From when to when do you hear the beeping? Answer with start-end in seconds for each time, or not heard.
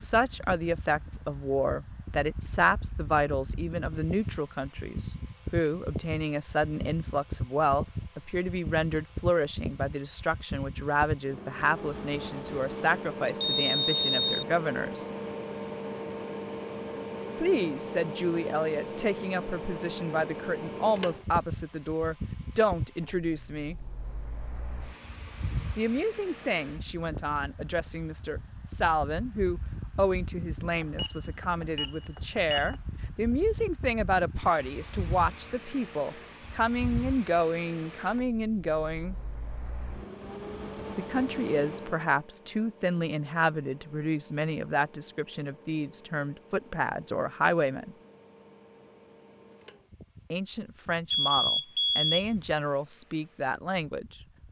13.4-14.4, 30.8-32.8, 51.1-52.2.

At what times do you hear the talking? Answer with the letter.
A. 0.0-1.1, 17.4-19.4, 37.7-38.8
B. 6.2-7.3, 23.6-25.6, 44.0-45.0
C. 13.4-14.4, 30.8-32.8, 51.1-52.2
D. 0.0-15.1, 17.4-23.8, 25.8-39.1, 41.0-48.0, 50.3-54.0
D.